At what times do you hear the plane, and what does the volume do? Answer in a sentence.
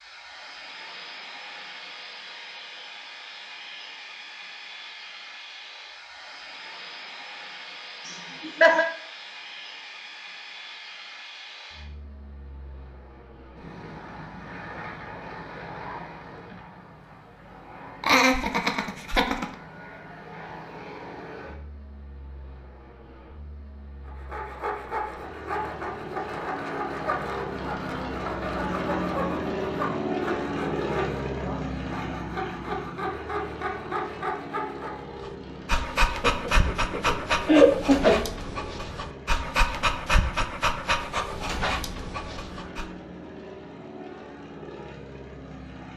The plane can be heard from 0.0 to 45.9 s, getting louder then quieter.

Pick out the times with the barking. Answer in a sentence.
The barking can be heard from 35.2 to 42.9 s.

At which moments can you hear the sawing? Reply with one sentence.
The sawing can be heard from 24.1 to 35.0 s.